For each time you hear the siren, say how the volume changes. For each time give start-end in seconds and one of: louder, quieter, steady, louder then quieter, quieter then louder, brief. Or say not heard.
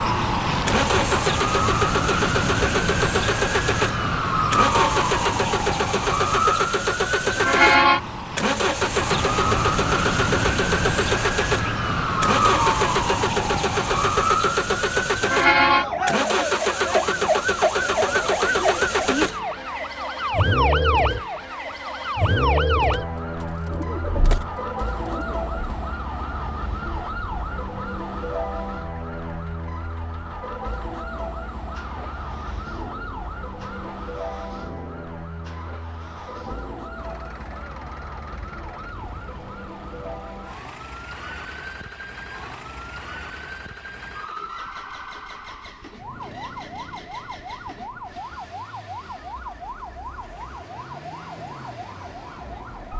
0.0-52.9 quieter.